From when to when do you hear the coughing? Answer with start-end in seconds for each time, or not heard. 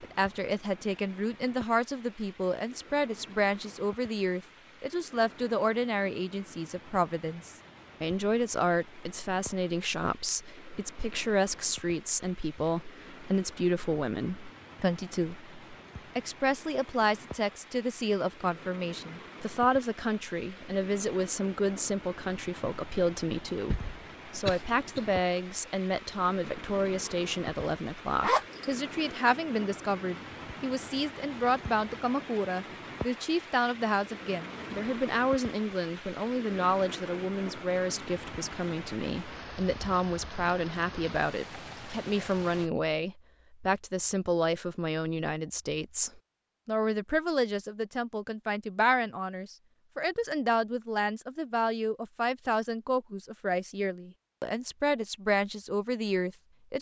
23.7-25.1.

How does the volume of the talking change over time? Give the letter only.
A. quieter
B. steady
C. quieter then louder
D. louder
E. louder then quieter
B.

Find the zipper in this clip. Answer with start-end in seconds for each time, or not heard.
28.2-28.8.